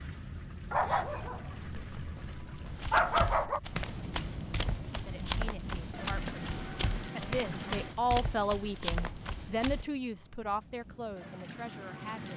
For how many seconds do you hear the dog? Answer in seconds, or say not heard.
3 s.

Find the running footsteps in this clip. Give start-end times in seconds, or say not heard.
2.6-9.8.